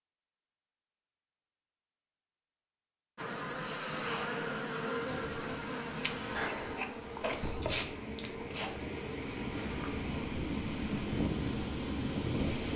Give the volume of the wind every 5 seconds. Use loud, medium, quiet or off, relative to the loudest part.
off, medium, loud.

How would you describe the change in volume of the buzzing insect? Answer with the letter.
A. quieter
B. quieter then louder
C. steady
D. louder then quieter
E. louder
A.